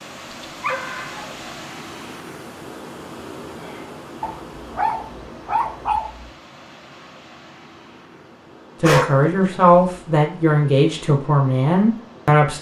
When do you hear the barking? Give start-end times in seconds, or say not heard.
0.3-1.6, 4.2-6.2, 8.8-9.9.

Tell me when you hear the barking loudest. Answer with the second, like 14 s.
9 s.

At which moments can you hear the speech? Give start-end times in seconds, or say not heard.
8.8-12.5.